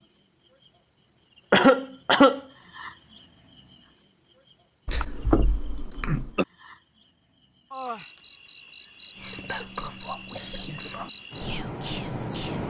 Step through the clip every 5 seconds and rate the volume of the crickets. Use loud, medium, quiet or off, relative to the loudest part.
loud, medium, loud.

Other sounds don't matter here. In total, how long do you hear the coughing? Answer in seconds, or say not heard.
4 s.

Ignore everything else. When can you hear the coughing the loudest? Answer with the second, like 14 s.
2 s.